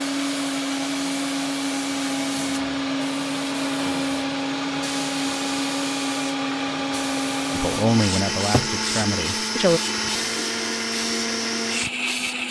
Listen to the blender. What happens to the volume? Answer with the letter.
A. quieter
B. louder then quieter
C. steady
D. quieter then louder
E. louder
C.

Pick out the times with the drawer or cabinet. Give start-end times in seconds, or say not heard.
8.2-8.8.